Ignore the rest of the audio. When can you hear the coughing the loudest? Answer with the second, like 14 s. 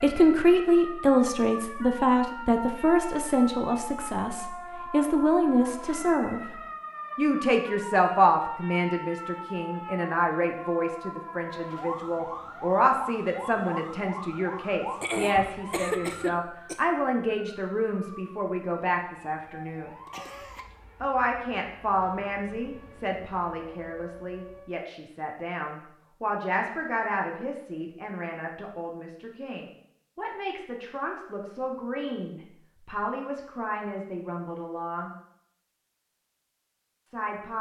16 s.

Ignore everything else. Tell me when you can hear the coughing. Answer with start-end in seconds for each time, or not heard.
15.0-16.8, 20.1-20.6.